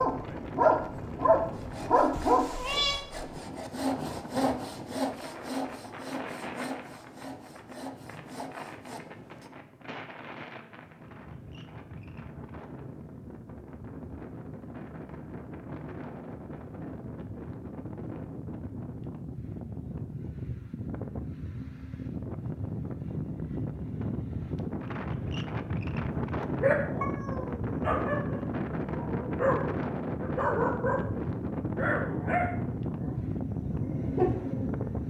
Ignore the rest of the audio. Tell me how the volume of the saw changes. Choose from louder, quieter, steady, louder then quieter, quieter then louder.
louder then quieter.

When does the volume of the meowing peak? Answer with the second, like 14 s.
3 s.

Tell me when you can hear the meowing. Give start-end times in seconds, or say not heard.
2.1-3.0, 27.0-27.6.